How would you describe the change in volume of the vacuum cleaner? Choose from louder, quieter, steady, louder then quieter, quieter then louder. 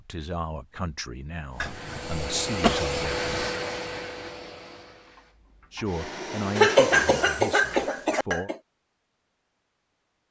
quieter then louder.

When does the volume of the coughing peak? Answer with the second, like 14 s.
7 s.